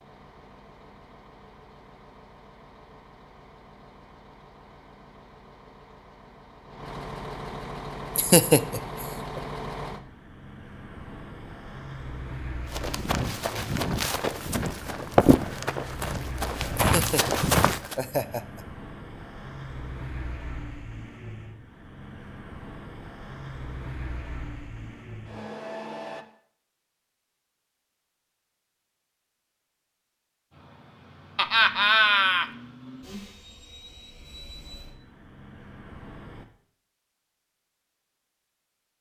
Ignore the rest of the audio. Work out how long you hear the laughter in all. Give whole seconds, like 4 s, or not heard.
4 s.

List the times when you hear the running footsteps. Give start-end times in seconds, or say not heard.
12.7-17.9.